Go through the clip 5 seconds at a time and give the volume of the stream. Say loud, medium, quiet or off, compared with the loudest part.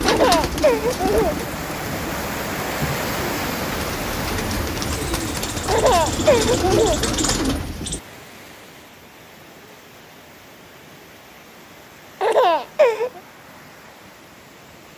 loud, medium, quiet.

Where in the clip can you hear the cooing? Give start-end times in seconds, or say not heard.
0.0-8.0.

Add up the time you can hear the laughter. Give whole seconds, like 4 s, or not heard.
4 s.